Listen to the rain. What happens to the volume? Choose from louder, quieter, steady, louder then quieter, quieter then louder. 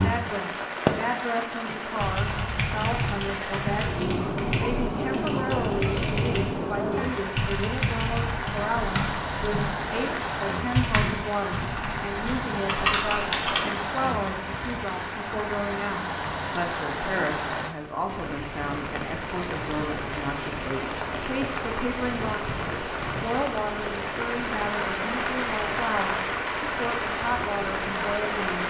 steady.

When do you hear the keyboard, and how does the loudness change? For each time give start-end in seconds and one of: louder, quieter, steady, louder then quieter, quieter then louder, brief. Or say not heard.
2.0-13.7 steady.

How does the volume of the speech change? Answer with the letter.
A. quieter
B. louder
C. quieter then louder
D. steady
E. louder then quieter
D.